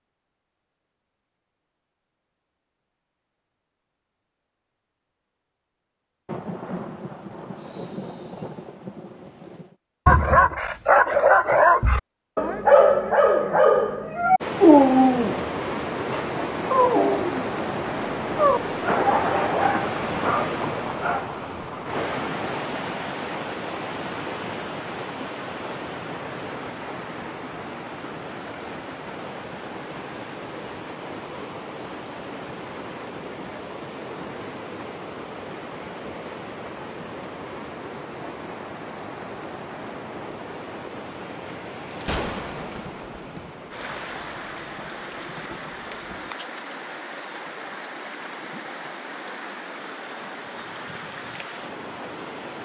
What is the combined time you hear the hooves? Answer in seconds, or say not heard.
not heard.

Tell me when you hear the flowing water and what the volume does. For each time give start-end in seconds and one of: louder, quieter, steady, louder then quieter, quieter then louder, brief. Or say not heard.
14.4-52.5 quieter.